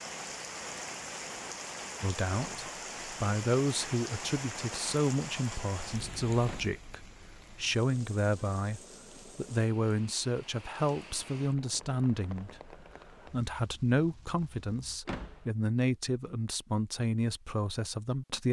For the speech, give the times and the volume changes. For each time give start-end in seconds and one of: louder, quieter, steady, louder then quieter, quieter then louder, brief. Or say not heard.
2.0-18.4 steady.